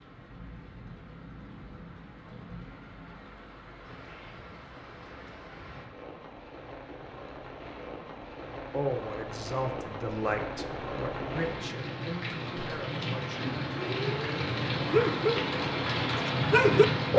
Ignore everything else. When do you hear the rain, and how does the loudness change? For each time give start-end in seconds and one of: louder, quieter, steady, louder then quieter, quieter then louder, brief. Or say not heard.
0.0-17.1 louder.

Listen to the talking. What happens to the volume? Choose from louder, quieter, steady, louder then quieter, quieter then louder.
quieter.